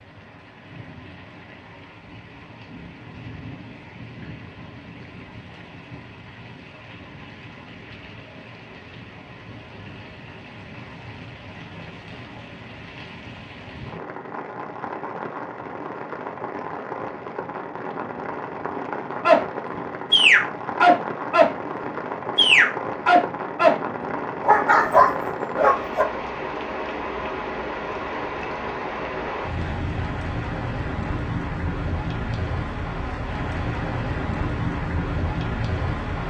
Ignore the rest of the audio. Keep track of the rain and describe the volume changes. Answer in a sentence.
The loudness of the rain goes up.